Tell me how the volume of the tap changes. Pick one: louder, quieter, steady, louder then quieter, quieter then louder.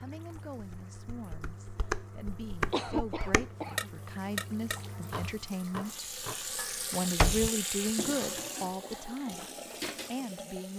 louder then quieter.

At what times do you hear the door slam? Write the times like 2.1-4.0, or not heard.
6.9-7.5.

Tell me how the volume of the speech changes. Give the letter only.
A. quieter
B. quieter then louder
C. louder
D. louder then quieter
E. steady
D.